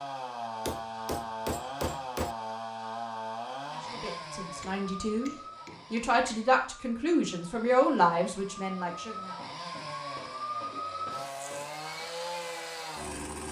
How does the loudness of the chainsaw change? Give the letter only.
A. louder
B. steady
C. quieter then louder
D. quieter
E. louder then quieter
C.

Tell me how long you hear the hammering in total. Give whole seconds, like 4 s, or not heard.
6 s.